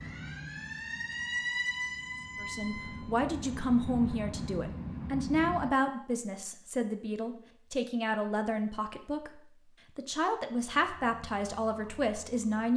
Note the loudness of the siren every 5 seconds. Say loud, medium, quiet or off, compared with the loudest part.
loud, off, quiet.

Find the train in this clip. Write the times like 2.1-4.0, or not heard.
0.0-5.7.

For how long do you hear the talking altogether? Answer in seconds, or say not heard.
10 s.